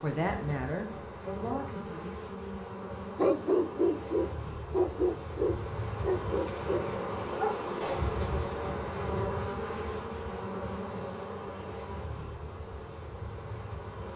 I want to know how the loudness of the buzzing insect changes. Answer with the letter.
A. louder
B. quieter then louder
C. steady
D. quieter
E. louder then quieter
E.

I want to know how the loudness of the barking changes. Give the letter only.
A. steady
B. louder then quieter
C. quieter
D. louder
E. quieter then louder
C.